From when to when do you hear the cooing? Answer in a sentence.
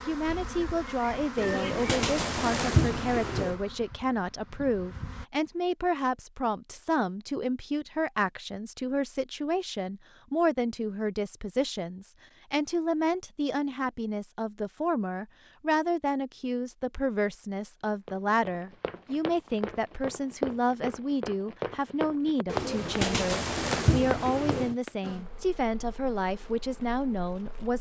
The cooing can be heard from 1.4 to 3.5 s and from 22.4 to 24.8 s.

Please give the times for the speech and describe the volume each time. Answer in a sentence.
The speech can be heard from 0.1 to 27.7 s, at a steady volume.